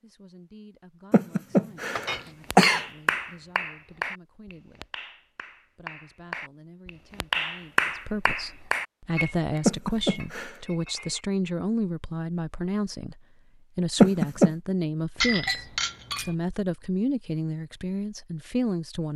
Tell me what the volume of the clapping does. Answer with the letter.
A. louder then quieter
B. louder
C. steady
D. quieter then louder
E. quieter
D.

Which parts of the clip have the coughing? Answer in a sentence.
The coughing can be heard from 1.1 to 2.9 s, from 9.7 to 10.6 s and from 14.0 to 14.5 s.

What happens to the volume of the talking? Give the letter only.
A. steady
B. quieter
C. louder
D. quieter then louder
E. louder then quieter
C.